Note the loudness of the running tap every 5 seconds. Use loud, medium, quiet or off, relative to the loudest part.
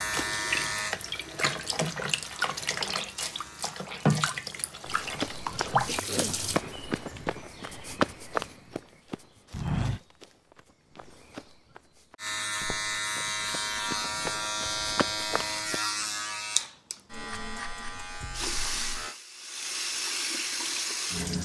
loud, loud, off, loud, loud.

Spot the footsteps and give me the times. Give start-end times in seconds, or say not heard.
4.8-15.8.